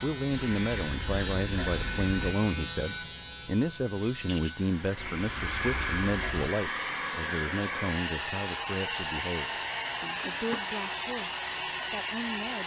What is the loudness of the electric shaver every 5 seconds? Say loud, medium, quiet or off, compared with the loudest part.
loud, medium, medium.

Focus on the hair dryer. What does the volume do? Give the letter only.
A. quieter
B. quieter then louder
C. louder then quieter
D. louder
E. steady
E.